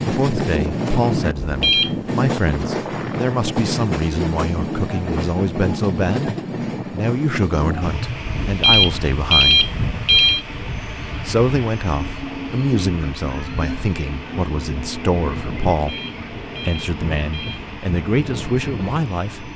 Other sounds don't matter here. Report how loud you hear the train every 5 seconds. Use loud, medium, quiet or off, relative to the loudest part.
loud, loud, medium, medium.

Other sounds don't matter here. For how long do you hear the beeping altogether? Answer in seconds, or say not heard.
4 s.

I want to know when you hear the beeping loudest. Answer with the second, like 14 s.
9 s.